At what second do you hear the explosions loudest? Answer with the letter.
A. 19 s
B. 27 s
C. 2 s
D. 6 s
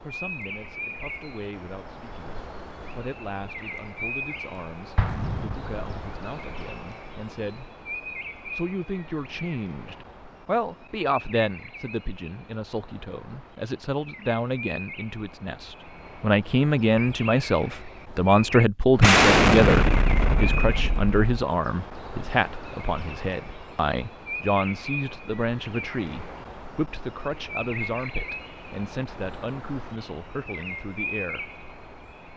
A.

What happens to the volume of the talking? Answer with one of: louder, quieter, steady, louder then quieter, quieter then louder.
louder then quieter.